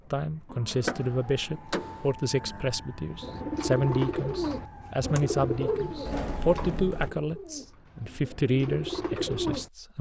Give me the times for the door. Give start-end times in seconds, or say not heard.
0.7-2.1, 6.0-7.1.